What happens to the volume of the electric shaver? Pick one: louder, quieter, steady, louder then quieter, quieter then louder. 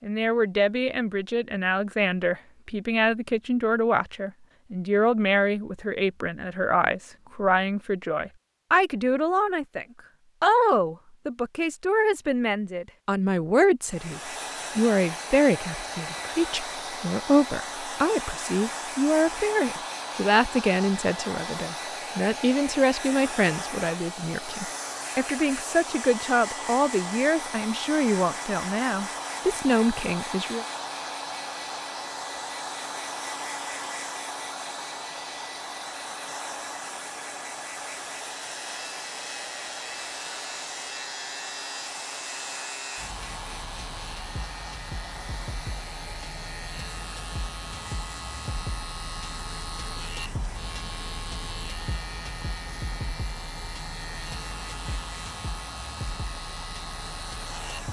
steady.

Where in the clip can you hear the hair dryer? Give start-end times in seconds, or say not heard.
13.8-57.8.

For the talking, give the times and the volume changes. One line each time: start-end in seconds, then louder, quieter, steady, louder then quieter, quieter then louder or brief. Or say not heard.
0.0-30.6 steady.